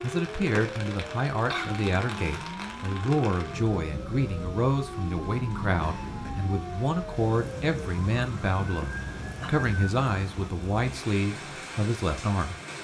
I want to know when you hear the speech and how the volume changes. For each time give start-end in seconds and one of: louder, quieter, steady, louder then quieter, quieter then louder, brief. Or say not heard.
0.0-12.6 steady.